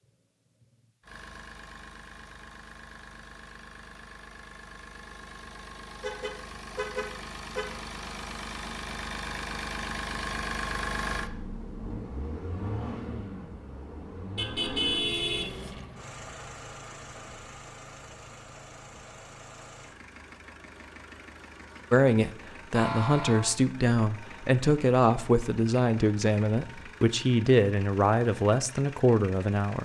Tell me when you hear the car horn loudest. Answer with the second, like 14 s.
15 s.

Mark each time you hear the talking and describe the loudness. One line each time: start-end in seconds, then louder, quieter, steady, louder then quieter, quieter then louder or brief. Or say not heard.
21.9-29.7 steady.